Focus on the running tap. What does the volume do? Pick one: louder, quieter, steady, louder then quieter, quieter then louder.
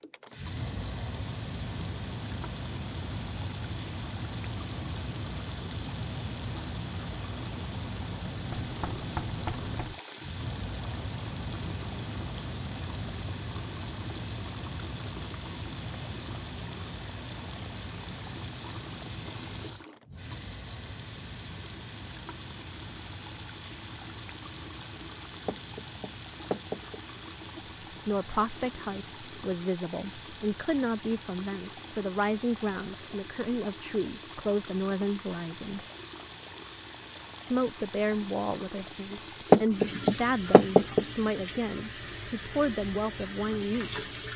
steady.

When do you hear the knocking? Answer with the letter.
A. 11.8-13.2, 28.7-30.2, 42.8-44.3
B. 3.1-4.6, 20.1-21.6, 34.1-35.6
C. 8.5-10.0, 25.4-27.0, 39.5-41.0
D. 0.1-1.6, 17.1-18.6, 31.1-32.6
C.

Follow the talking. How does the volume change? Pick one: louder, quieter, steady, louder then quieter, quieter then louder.
steady.